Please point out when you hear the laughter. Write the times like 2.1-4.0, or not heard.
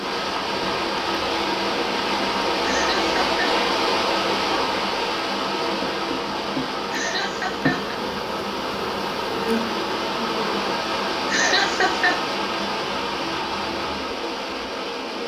2.6-3.4, 6.9-8.0, 11.2-12.2.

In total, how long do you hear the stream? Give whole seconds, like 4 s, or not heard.
15 s.